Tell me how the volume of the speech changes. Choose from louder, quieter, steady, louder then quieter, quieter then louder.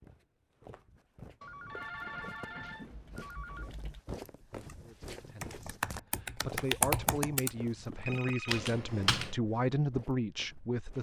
louder.